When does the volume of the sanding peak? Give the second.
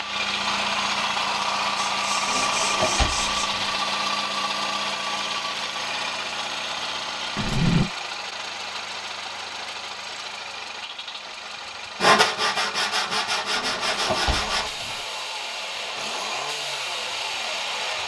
12 s.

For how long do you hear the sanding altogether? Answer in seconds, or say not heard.
4 s.